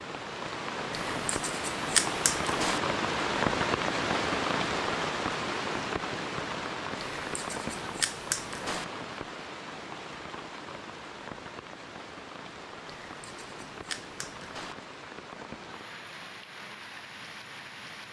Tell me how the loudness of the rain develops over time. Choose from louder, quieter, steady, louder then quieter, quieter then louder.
quieter.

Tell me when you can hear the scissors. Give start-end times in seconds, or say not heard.
0.9-2.8, 7.0-8.8, 12.8-14.8.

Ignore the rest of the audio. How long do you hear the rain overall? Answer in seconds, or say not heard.
18 s.